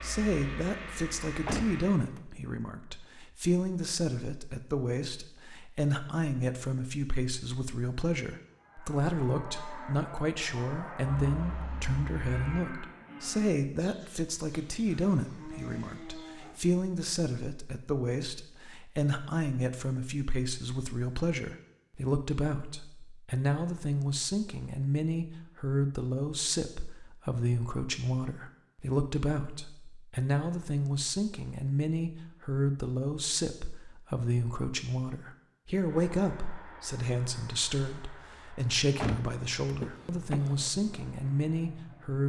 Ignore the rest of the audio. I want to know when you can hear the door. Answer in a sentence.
The door can be heard from 1.4 to 2.2 s and from 39.0 to 40.7 s.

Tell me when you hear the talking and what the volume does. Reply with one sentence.
You can hear the talking from 0.0 to 42.2 s, at a steady volume.